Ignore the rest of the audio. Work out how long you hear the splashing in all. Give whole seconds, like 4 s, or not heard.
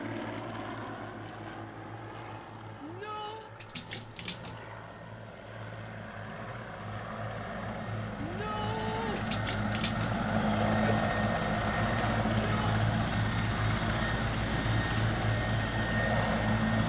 2 s.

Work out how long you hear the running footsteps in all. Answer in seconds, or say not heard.
not heard.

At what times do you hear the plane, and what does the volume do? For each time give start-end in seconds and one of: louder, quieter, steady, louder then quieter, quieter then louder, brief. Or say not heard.
0.0-16.8 louder.